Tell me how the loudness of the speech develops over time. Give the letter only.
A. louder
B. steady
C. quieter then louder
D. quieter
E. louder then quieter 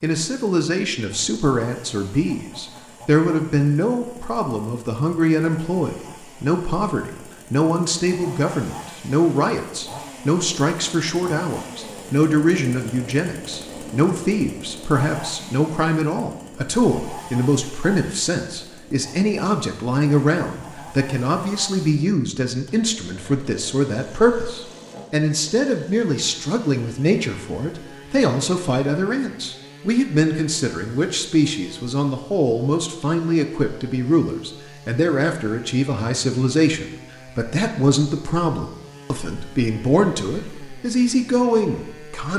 B.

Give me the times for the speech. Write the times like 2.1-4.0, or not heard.
0.0-42.3.